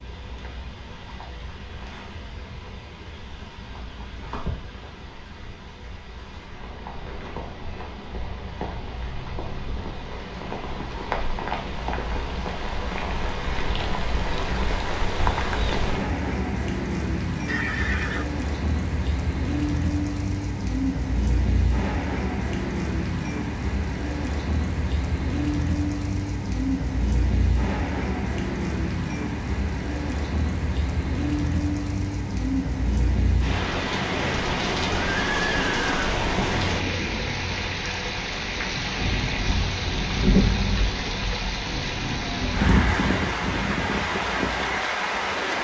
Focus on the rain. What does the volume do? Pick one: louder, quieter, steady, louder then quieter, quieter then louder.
louder.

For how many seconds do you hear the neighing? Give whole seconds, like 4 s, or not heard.
2 s.